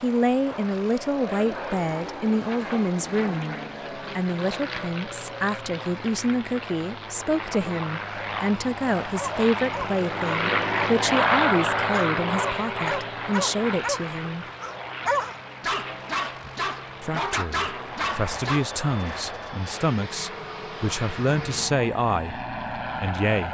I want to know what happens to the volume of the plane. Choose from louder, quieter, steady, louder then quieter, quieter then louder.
louder then quieter.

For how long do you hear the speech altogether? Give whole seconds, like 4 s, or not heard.
21 s.